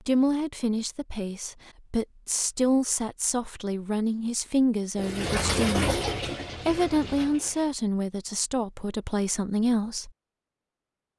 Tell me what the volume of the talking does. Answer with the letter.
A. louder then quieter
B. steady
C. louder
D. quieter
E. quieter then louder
B.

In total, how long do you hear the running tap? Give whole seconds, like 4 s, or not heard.
3 s.